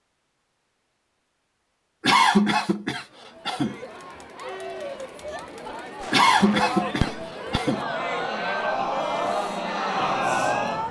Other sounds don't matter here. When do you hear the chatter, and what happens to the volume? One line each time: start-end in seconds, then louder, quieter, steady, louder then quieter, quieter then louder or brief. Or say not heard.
3.0-10.8 louder.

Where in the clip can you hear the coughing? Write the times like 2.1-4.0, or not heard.
2.0-3.8, 6.1-7.8.